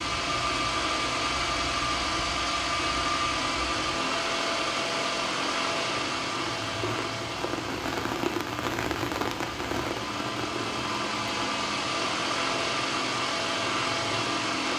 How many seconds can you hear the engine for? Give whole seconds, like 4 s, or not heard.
15 s.